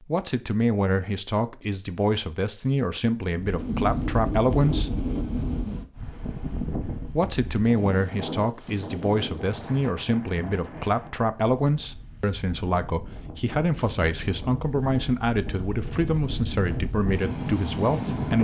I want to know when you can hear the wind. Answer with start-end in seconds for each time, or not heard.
3.2-18.4.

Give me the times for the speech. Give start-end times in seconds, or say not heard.
0.0-5.0, 7.0-18.4.